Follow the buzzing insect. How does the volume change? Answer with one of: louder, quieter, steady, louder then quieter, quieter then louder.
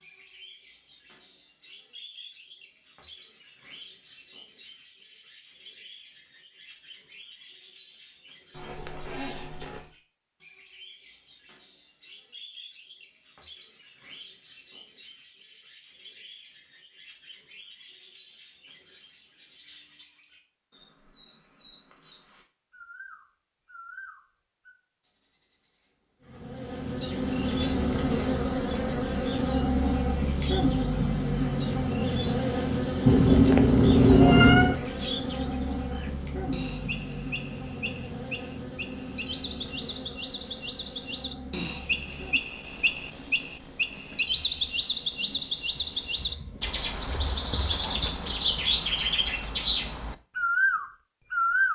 quieter.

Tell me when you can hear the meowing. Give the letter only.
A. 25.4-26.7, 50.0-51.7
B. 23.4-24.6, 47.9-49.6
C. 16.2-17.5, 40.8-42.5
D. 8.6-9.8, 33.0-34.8
D.